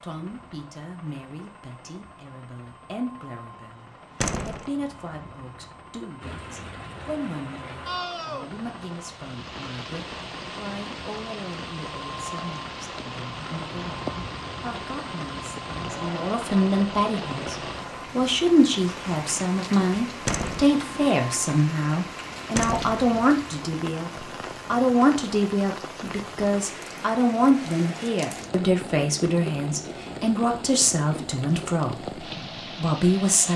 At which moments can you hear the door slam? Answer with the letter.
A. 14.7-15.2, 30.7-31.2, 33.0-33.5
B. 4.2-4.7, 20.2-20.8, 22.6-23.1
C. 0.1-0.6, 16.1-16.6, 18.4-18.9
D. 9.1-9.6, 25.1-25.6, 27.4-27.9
B.